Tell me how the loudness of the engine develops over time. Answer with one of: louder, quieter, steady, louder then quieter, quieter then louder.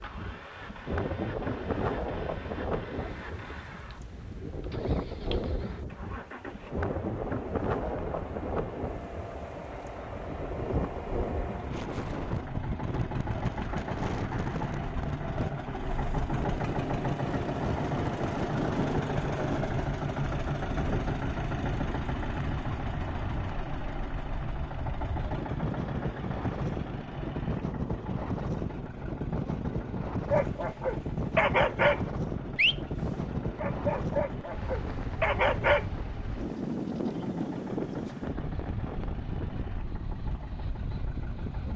louder then quieter.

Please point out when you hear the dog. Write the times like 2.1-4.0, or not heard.
30.3-35.9.